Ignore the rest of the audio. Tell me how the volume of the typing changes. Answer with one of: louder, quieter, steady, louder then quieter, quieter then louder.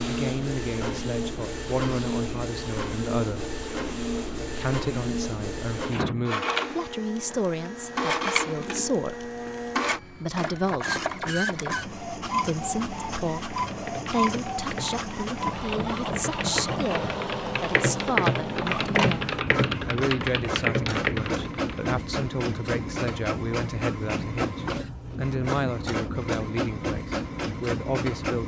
louder.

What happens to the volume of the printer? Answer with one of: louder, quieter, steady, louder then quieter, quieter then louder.
steady.